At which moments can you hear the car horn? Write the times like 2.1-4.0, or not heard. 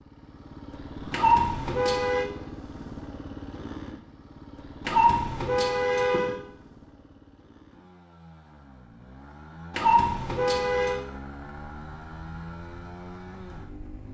1.1-2.2, 4.8-6.3, 9.7-11.0.